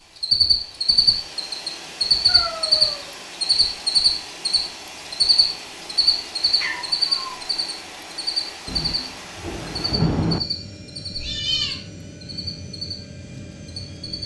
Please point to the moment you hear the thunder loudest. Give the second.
10 s.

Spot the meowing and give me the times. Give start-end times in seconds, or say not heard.
2.2-3.2, 6.6-7.4, 11.1-11.8.